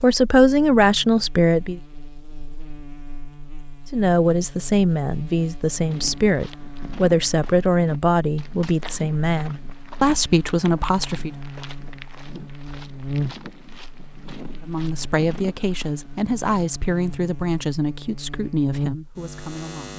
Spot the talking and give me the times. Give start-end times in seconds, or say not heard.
0.0-1.8, 3.9-11.3, 14.6-19.9.